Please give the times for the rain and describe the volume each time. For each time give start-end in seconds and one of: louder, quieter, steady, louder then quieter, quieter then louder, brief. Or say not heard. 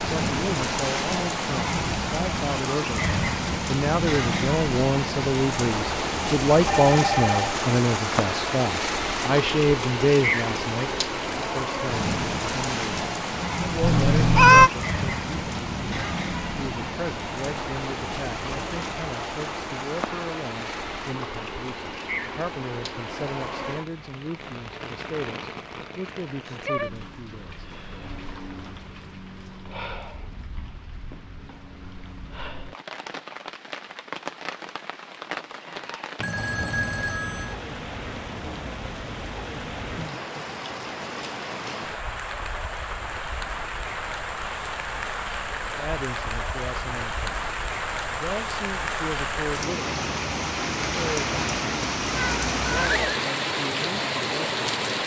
0.0-55.0 quieter then louder.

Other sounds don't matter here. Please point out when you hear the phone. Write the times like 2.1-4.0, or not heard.
6.7-7.6, 36.1-37.5.